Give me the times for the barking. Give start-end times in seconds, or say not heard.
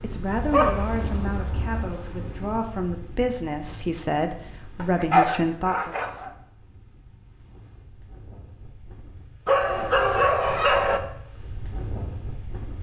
0.3-1.9, 4.8-6.3, 9.4-11.0.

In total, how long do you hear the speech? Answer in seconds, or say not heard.
6 s.